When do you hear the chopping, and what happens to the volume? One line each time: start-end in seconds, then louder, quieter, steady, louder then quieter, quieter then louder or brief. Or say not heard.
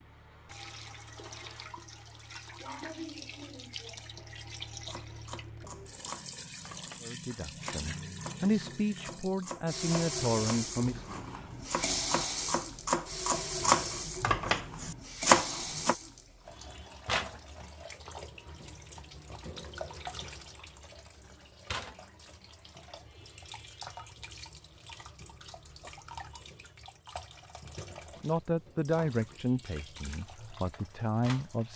4.8-15.9 louder.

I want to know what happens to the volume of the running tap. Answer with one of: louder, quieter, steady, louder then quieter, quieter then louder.
louder then quieter.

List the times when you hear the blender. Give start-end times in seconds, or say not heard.
0.0-2.4.